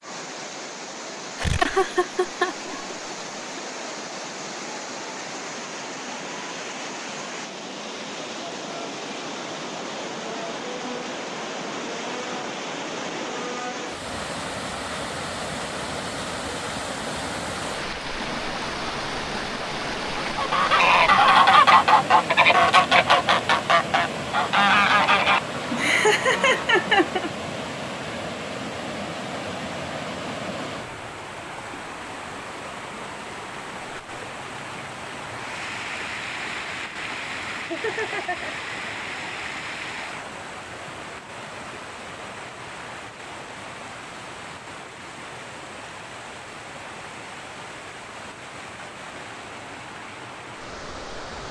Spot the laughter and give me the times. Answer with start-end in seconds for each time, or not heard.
1.4-3.6, 25.7-27.3, 37.1-38.5.